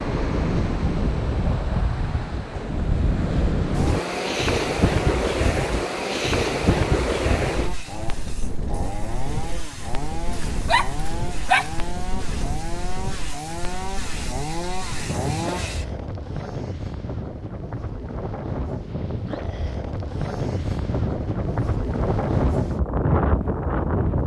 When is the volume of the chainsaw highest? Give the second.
15 s.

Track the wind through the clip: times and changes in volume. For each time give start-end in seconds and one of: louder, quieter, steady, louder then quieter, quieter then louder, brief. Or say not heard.
0.0-24.2 quieter then louder.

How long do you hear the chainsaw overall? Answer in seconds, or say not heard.
12 s.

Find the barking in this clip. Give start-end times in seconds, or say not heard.
10.3-11.8.